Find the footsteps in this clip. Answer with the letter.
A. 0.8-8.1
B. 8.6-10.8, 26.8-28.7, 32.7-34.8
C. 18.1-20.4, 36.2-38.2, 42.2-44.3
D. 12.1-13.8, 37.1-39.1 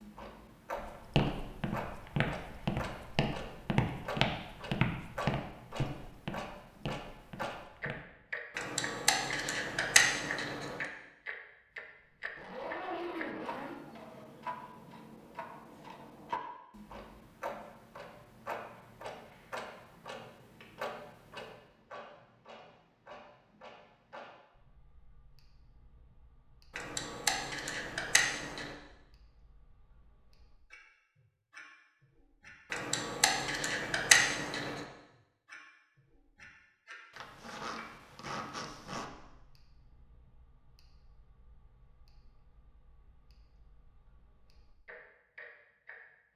A.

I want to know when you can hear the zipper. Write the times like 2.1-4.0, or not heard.
12.1-13.8, 37.1-39.1.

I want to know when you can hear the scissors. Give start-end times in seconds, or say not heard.
8.6-10.8, 26.8-28.7, 32.7-34.8.